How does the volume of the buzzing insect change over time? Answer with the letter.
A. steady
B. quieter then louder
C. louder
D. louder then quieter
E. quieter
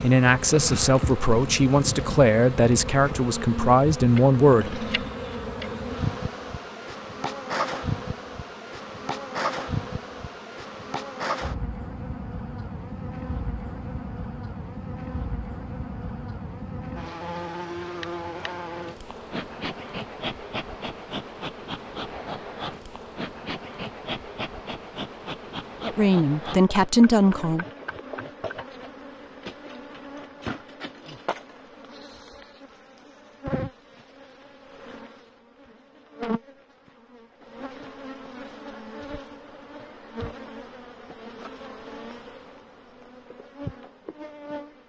E.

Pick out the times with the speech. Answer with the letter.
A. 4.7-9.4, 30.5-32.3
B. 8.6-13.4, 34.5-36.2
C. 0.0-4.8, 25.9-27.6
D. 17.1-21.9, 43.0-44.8
C.